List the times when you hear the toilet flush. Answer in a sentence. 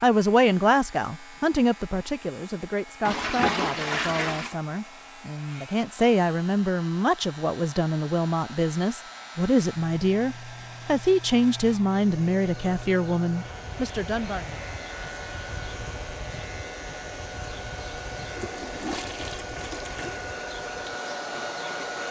You can hear the toilet flush from 3.0 to 4.5 s and from 18.2 to 20.2 s.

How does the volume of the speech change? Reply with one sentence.
The loudness of the speech goes down, then up.